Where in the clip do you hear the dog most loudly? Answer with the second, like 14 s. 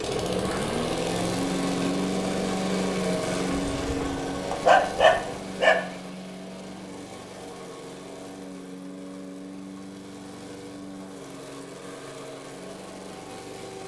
5 s.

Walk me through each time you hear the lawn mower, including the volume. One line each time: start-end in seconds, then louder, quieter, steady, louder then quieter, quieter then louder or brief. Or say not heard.
0.0-13.8 quieter.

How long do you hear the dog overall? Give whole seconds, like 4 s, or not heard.
2 s.